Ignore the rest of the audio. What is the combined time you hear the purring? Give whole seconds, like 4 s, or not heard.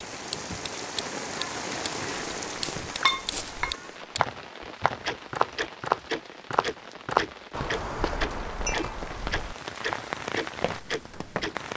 not heard.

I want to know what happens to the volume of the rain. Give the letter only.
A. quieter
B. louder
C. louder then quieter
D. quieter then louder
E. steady
D.